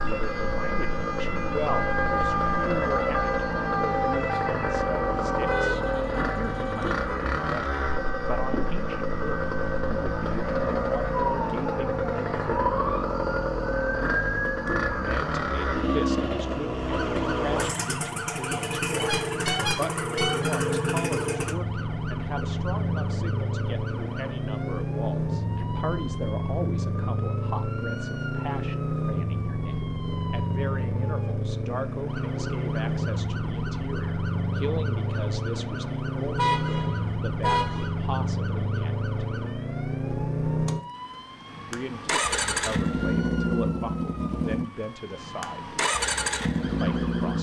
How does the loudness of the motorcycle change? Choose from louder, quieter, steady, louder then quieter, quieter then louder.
steady.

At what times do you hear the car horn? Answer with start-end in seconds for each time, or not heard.
5.5-7.2, 18.9-20.6, 36.4-37.9.